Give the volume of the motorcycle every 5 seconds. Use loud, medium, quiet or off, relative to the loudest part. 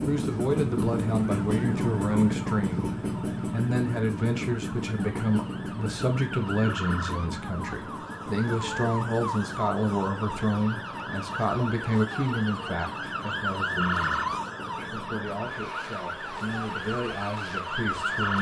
loud, medium, quiet, quiet.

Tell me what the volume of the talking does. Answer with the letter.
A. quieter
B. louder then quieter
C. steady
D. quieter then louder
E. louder
A.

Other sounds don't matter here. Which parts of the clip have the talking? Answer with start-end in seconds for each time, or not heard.
0.0-18.3.